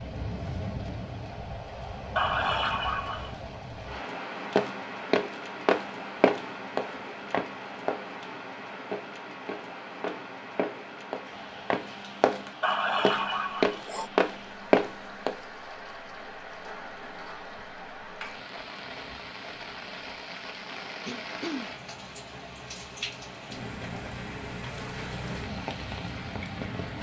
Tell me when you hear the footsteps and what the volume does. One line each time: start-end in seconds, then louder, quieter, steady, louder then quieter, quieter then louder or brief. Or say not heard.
4.5-15.3 quieter then louder.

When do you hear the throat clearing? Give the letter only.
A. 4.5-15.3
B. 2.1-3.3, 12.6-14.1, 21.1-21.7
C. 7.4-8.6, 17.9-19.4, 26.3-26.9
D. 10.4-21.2
B.